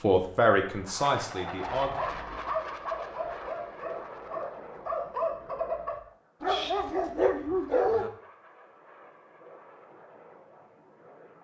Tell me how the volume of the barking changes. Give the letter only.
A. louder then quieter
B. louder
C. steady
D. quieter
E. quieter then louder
B.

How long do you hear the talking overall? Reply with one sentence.
You can hear the talking for 2 seconds altogether.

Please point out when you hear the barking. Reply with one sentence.
You can hear the barking from 1.8 to 8.1 s.